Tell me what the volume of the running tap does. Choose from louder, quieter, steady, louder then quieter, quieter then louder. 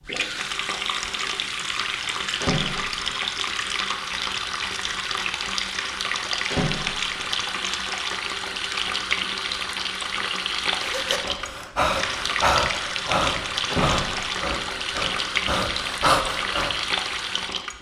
steady.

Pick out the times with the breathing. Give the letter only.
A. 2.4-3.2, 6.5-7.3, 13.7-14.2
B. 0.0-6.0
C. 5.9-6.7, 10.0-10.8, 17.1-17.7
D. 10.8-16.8
D.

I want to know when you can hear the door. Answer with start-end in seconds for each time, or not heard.
2.4-3.2, 6.5-7.3, 13.7-14.2.